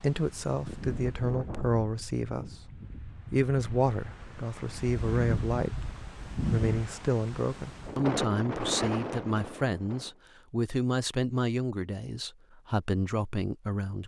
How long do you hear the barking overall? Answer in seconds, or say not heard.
not heard.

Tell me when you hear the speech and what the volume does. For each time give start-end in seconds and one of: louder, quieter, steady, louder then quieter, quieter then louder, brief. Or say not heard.
0.0-14.0 steady.